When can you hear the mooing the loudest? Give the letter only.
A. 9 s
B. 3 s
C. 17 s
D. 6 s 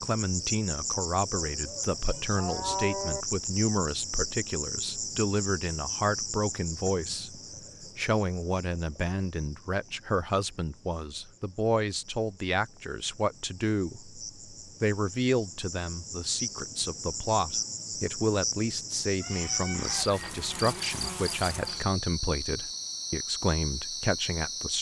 B.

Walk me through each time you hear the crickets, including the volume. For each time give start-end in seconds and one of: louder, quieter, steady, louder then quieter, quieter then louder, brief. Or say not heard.
0.0-24.7 quieter then louder.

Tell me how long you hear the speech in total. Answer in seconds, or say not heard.
25 s.